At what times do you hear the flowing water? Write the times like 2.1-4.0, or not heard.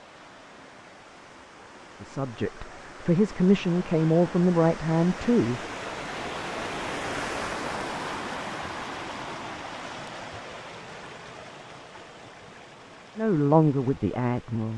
0.0-14.7.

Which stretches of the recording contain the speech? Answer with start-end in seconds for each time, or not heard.
2.0-5.6, 13.2-14.7.